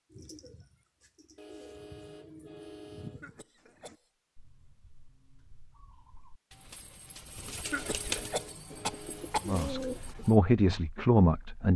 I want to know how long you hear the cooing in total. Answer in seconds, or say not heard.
10 s.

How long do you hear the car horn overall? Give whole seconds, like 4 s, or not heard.
4 s.